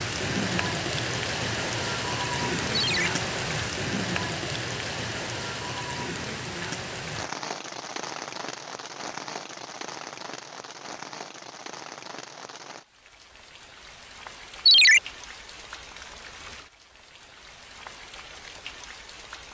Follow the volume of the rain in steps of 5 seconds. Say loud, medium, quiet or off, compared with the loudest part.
loud, medium, quiet, quiet.